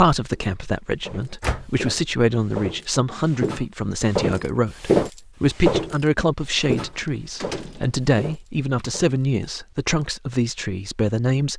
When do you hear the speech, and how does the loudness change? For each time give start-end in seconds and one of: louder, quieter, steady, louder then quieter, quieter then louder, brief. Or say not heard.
0.0-11.5 steady.